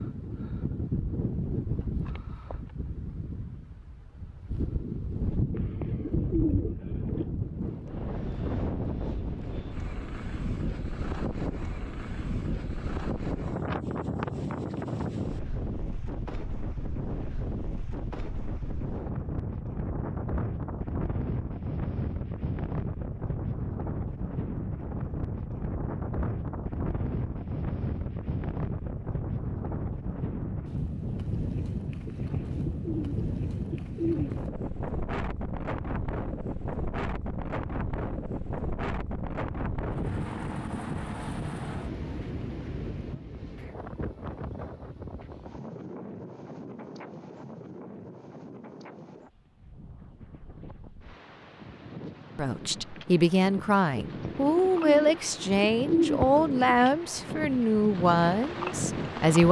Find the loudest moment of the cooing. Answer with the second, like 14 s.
56 s.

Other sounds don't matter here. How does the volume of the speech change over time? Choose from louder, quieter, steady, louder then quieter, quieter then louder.
steady.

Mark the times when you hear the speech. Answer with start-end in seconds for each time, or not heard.
52.4-59.4.